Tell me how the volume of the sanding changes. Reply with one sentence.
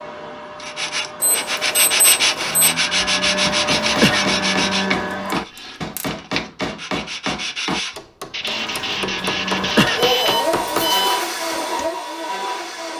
The loudness of the sanding goes down, then up.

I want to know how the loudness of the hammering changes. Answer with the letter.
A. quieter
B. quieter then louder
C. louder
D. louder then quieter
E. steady
E.